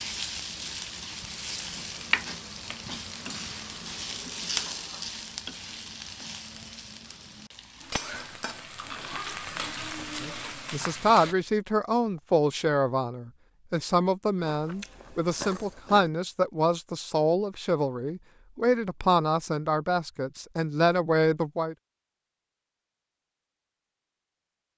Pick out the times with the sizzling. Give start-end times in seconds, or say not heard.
0.0-11.3.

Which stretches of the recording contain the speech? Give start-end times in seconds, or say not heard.
10.2-21.8.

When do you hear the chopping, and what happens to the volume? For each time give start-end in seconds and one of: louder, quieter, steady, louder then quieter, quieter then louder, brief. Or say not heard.
not heard.